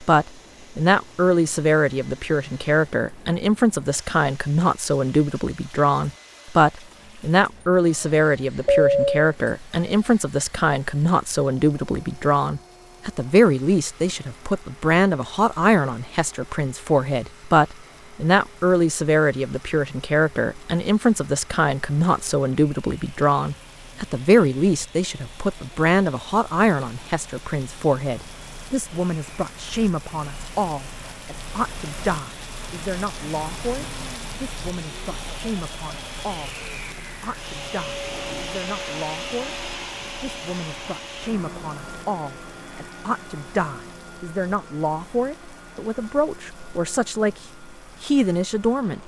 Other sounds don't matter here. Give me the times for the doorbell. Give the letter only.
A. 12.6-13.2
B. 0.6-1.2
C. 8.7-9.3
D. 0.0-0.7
C.